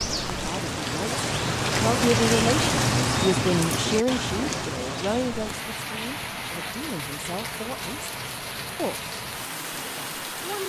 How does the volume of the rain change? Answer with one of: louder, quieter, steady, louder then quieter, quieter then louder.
quieter.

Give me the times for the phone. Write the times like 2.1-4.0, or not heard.
not heard.